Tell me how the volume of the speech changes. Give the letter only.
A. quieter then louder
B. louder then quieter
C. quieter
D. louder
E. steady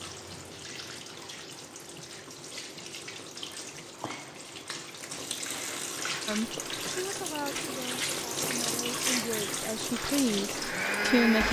A.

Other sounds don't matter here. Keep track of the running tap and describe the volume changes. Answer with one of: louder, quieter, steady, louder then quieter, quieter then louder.
louder.